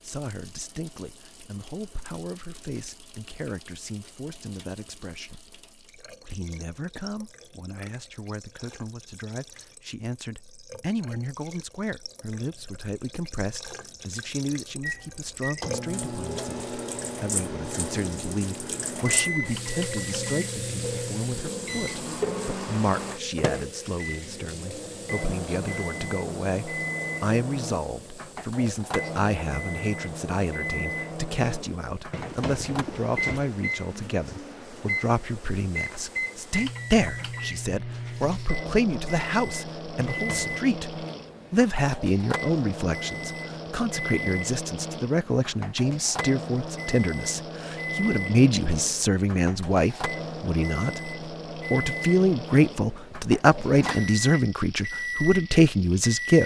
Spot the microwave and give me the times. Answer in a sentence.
You can hear the microwave from 14.8 to 56.4 s.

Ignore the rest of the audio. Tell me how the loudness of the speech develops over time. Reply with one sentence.
The loudness of the speech goes up.